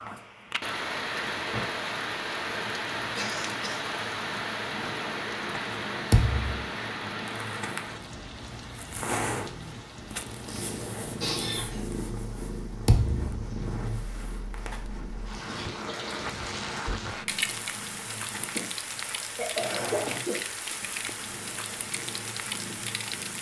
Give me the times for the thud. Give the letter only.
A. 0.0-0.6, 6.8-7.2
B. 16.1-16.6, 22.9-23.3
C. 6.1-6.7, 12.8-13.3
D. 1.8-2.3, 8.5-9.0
C.